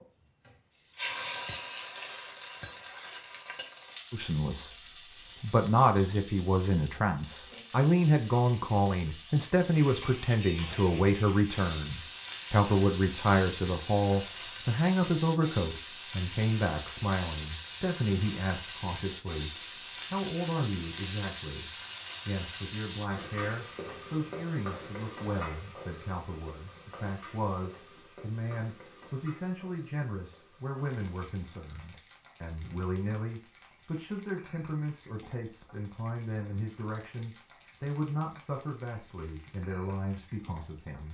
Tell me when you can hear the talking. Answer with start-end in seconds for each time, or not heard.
4.1-41.0.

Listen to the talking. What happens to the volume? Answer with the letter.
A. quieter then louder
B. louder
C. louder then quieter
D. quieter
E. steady
D.